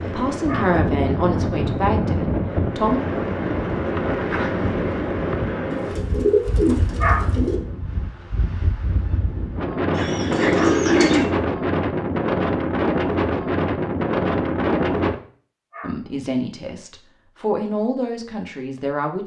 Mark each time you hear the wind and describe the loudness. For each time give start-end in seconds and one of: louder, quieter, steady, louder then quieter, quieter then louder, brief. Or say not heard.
0.0-15.2 quieter then louder.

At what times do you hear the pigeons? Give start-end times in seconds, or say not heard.
5.7-7.6, 9.9-11.2.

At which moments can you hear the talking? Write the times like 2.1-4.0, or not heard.
0.0-3.0, 15.8-19.2.